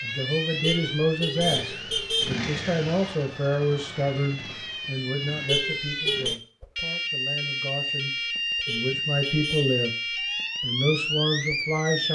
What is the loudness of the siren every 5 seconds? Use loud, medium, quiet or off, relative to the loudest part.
medium, loud, loud.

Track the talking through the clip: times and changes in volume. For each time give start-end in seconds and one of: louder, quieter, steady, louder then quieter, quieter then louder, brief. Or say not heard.
0.0-9.9 quieter then louder
10.6-12.0 brief.